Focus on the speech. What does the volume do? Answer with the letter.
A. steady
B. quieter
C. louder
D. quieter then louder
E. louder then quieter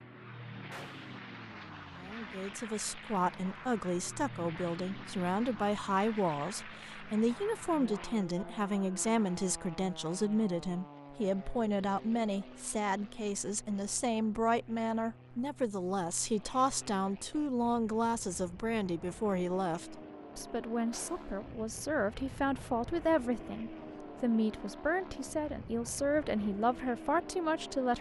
A.